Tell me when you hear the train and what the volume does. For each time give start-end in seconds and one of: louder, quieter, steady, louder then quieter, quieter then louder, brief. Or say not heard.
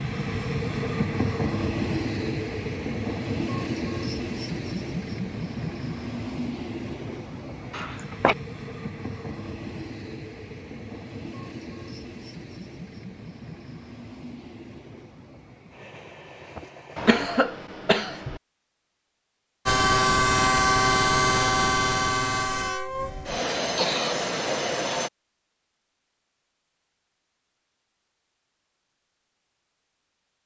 0.0-17.1 quieter
19.6-25.1 quieter.